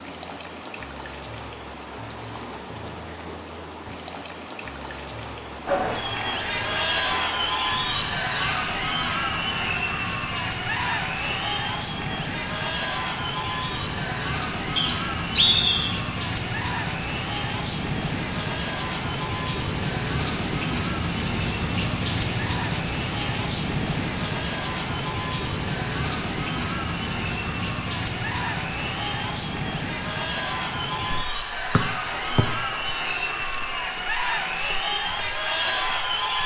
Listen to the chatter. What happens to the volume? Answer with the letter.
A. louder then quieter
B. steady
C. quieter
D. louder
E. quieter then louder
E.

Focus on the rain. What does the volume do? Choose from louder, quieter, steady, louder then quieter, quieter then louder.
louder then quieter.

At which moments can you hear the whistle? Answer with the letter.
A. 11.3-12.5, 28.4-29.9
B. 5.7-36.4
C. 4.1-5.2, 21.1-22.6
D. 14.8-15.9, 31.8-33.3
D.